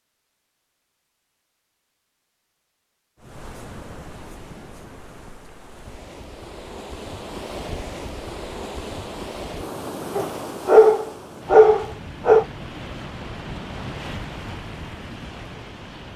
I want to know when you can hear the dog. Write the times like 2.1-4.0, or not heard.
10.2-12.4.